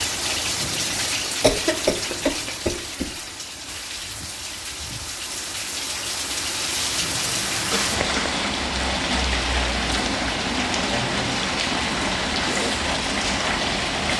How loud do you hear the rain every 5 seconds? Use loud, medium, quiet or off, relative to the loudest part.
medium, loud, loud.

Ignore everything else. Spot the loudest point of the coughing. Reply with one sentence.
The volume of the coughing peaks at 2 seconds.